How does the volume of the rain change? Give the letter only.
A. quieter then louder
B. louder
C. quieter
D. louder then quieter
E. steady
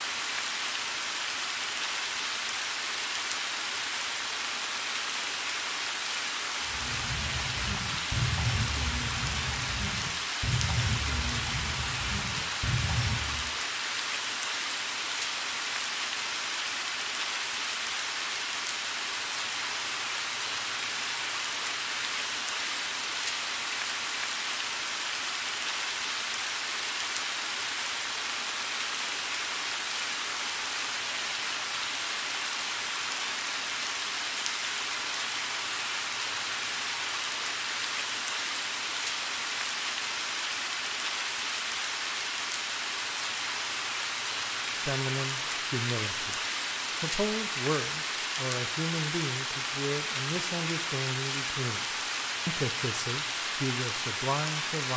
E.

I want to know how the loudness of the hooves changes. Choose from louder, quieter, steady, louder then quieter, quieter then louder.
steady.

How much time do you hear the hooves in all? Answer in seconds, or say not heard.
7 s.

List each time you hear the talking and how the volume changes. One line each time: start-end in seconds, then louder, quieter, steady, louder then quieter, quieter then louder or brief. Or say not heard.
44.8-54.9 steady.